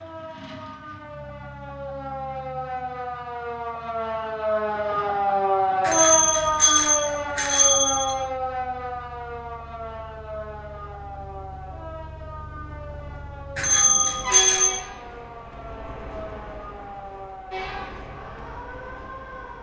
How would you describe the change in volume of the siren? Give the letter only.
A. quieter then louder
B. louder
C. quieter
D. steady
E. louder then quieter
E.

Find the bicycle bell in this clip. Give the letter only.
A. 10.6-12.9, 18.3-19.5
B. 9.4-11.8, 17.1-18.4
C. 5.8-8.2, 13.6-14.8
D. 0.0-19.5
C.